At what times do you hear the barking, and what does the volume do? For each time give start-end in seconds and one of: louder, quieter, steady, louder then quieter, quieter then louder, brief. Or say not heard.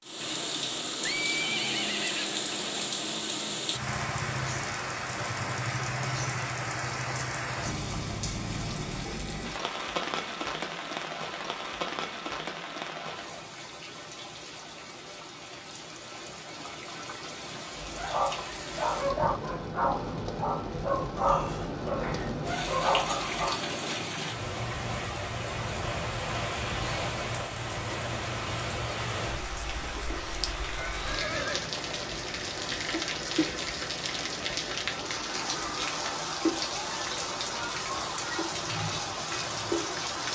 17.8-23.6 steady.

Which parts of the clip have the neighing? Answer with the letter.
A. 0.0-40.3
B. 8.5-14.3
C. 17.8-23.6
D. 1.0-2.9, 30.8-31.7
D.